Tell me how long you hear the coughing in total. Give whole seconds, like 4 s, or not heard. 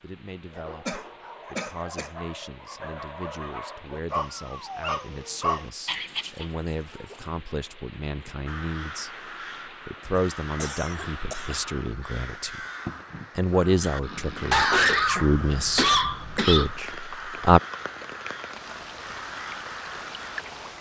5 s.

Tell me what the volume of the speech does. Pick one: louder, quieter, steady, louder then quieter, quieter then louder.
louder.